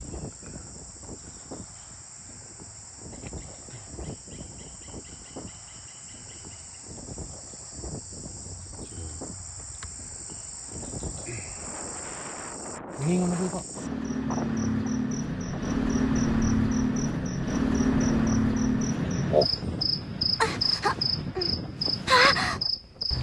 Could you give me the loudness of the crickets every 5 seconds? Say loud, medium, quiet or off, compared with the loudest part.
quiet, quiet, medium, loud, loud.